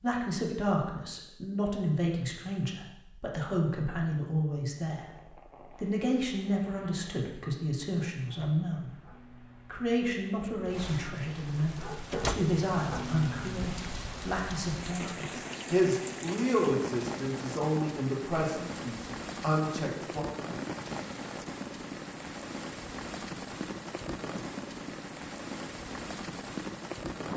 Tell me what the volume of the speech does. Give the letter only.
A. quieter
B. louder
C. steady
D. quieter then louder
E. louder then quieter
C.